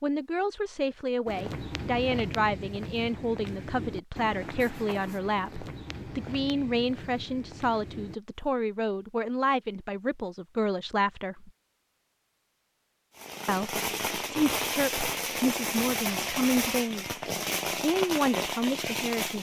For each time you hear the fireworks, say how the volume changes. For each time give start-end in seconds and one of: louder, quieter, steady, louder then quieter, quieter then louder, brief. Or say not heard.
13.2-19.3 steady.